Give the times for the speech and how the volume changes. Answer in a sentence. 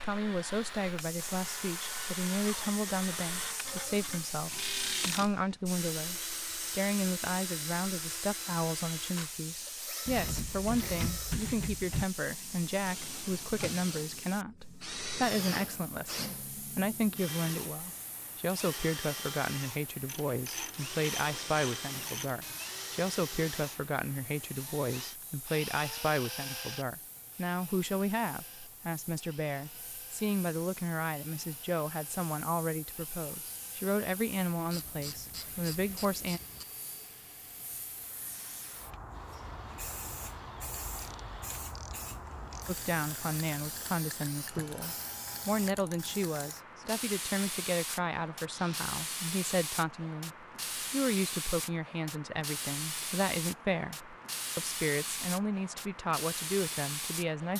The speech can be heard from 0.0 to 36.4 s, at a steady volume; and from 42.6 to 57.5 s, at a steady volume.